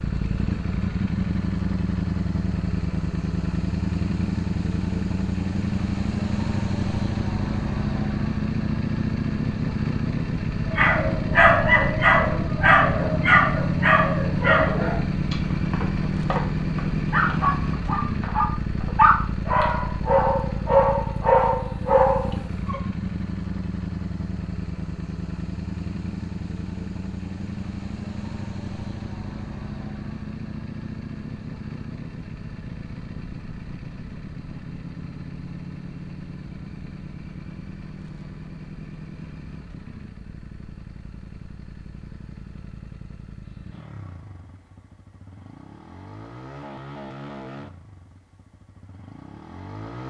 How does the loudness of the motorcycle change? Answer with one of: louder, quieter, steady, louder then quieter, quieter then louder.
quieter.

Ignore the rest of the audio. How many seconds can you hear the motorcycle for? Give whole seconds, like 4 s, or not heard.
50 s.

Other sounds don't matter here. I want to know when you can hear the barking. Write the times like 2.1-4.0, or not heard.
10.7-22.8.